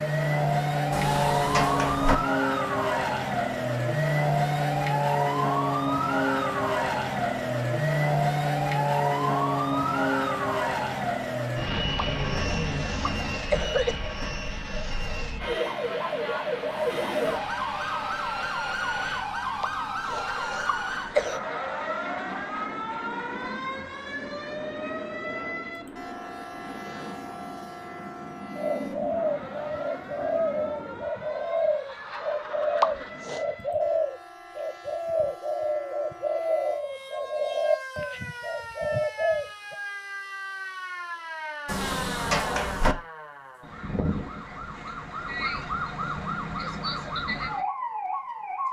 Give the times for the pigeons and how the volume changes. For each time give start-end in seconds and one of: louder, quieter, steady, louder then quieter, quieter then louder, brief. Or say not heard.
28.6-39.8 steady.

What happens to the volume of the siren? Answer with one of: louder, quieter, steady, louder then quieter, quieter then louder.
quieter then louder.